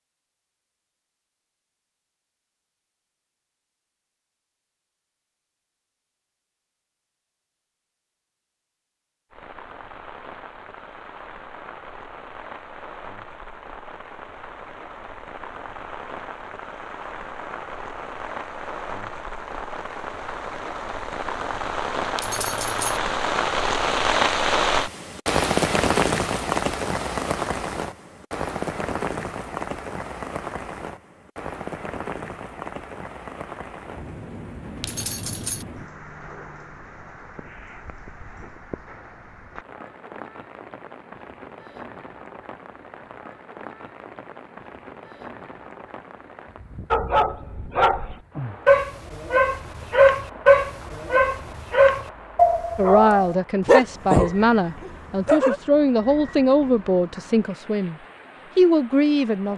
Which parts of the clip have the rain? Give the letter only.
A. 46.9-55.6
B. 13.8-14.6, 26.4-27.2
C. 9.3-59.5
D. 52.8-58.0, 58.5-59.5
C.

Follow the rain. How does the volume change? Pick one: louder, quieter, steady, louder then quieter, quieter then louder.
louder then quieter.